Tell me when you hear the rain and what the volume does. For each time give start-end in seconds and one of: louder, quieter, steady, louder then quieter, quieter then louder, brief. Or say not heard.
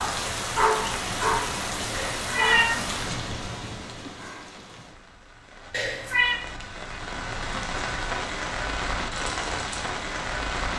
0.0-10.7 quieter then louder.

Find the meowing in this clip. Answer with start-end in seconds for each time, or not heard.
1.9-2.8, 5.7-6.4.